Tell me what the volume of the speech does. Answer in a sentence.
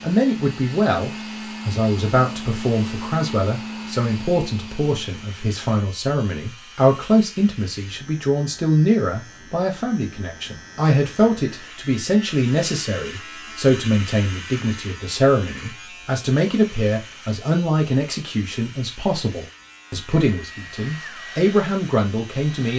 The loudness of the speech stays about the same.